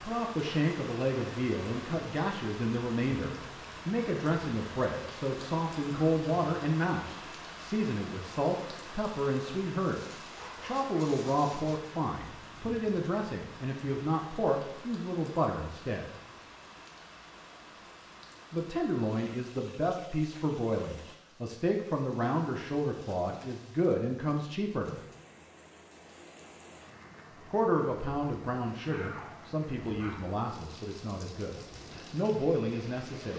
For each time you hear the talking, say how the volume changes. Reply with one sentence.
You can hear the talking from 0.0 to 16.1 s, at a steady volume; from 18.5 to 24.9 s, at a steady volume; and from 27.4 to 33.3 s, getting quieter then louder.